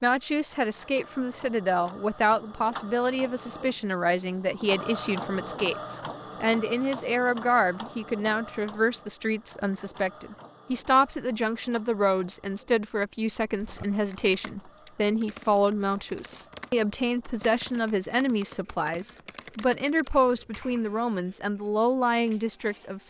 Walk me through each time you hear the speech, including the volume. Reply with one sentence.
The speech can be heard from 0.0 to 23.0 s, at a steady volume.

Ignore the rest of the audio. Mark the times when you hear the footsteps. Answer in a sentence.
The footsteps can't be heard in this clip.